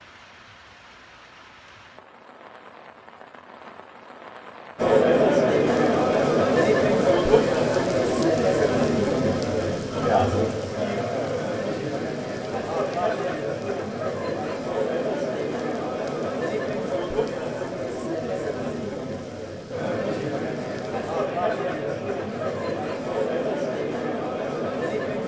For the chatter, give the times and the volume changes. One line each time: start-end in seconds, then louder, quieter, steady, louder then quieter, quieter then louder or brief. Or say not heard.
4.8-25.2 quieter.